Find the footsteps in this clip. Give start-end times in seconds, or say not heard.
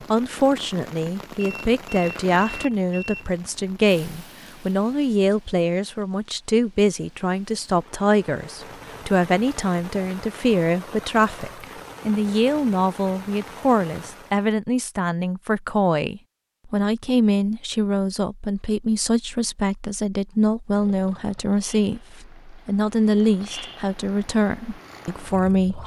not heard.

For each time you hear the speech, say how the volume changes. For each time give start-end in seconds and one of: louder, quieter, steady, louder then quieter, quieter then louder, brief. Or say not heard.
0.0-25.8 steady.